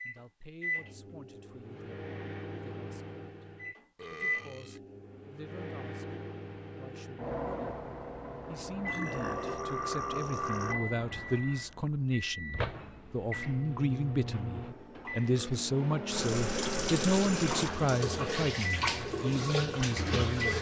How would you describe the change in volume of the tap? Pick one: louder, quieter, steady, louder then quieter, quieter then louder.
steady.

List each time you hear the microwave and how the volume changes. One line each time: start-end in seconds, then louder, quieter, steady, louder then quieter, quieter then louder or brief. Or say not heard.
0.0-20.5 steady.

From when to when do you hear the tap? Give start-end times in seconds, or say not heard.
16.1-20.5.